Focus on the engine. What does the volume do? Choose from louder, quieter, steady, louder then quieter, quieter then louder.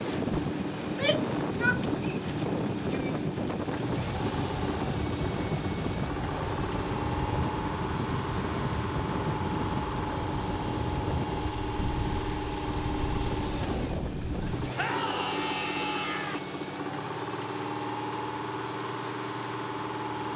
steady.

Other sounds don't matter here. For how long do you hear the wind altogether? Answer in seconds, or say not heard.
15 s.